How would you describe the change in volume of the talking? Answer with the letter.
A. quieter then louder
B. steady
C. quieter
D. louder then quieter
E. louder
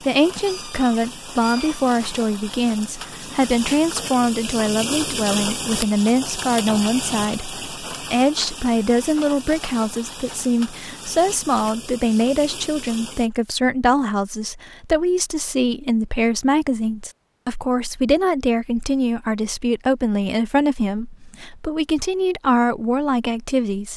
B.